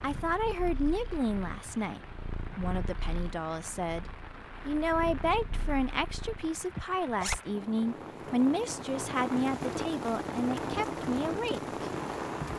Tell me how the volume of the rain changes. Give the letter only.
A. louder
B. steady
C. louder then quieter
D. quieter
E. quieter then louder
A.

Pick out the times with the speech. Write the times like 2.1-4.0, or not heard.
0.0-11.9.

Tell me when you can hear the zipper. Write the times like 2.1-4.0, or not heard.
7.0-7.4.